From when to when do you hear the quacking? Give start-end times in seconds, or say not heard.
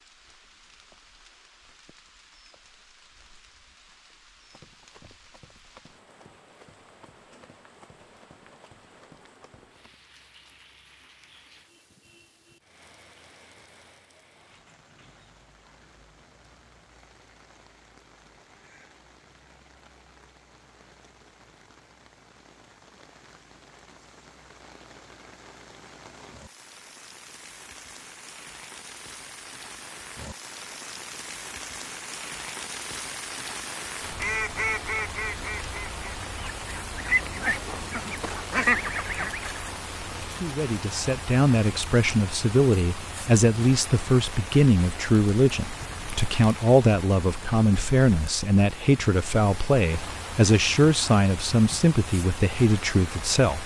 34.2-39.7.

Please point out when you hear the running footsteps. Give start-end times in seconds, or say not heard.
4.5-9.9.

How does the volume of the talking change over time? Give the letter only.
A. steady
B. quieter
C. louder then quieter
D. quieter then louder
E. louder
A.